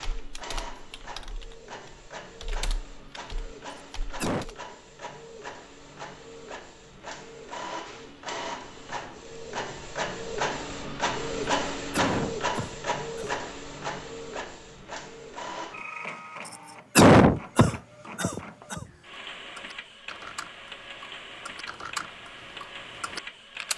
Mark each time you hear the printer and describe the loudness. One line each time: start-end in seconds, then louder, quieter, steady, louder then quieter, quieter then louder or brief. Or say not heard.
0.0-23.7 louder then quieter.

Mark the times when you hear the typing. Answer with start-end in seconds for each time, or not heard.
0.0-4.5, 18.9-23.7.